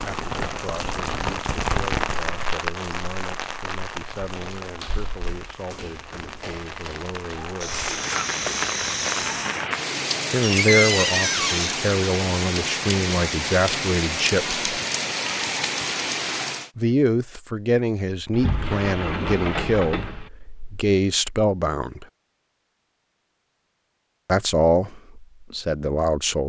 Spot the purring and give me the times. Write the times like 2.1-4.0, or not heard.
not heard.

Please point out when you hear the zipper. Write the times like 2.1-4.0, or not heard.
not heard.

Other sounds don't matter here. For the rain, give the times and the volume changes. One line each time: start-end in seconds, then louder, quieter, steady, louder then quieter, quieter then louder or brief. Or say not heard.
0.0-16.7 quieter then louder.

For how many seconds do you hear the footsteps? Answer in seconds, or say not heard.
6 s.